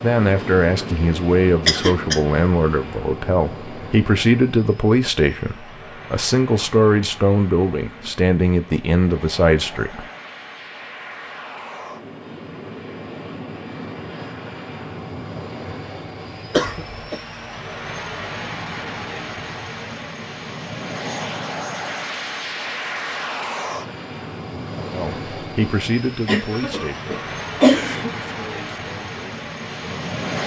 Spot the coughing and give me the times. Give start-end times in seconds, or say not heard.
1.6-2.2, 16.5-17.2, 26.2-28.1.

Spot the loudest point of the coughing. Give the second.
28 s.